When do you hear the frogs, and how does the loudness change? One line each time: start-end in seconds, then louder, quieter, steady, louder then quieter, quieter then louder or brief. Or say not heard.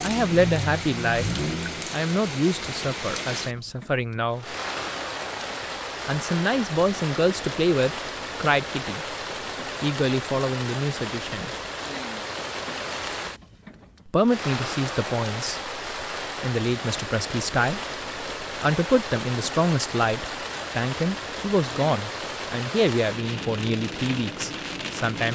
not heard.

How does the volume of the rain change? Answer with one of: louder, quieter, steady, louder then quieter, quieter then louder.
steady.